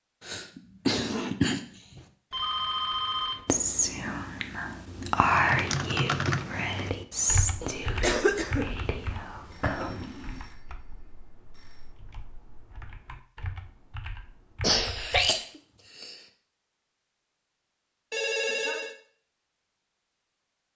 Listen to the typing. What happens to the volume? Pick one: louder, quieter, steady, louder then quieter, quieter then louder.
quieter then louder.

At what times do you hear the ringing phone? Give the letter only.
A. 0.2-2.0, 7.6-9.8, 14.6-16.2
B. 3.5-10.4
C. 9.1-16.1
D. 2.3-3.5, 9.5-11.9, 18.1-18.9
D.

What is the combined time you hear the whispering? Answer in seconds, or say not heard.
7 s.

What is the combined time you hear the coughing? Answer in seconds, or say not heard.
6 s.